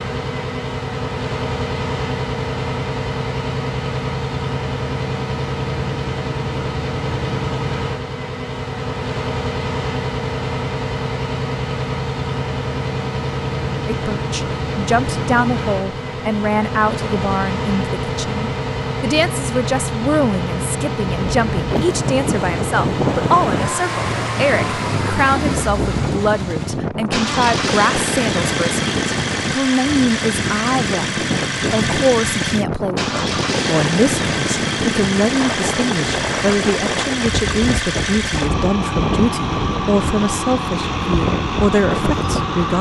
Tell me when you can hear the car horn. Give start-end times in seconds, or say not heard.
not heard.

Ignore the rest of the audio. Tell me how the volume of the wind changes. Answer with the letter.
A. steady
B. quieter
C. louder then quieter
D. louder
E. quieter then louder
A.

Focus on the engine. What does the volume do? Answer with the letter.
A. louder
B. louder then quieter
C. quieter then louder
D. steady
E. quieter
D.